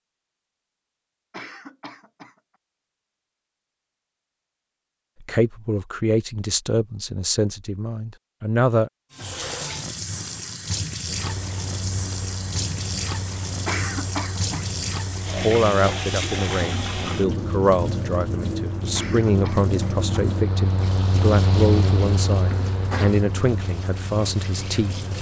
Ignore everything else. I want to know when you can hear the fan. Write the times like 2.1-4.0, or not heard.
11.0-25.1.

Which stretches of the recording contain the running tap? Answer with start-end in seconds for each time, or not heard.
9.1-25.1.